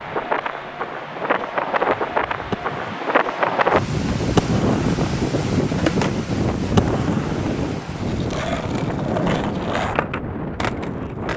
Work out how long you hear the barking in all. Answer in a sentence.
The barking can't be heard in this clip.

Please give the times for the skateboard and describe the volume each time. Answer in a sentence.
You can hear the skateboard from 0.0 to 11.3 s, getting louder.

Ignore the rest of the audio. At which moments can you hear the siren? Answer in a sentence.
You can't hear the siren here.